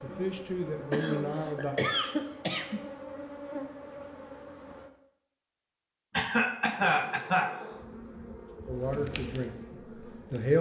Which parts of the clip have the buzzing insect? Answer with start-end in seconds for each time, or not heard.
0.0-4.9, 6.8-10.5.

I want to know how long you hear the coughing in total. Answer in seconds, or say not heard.
3 s.